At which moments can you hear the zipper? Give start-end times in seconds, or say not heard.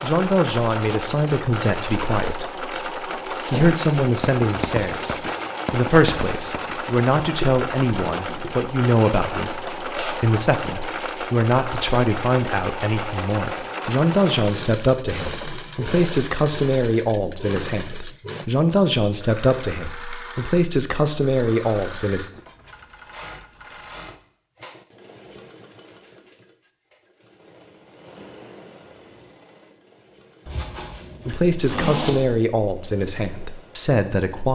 9.7-10.3, 30.4-32.2.